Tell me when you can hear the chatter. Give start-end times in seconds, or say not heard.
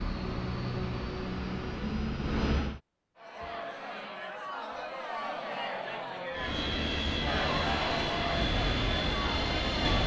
3.1-10.0.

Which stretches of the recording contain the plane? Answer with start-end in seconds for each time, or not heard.
0.0-2.8, 6.3-10.0.